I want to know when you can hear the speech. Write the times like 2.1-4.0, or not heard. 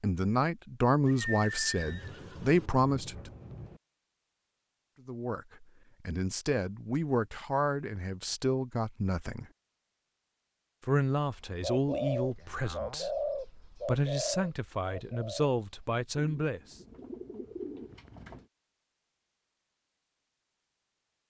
0.0-3.3, 5.0-9.4, 10.8-16.8.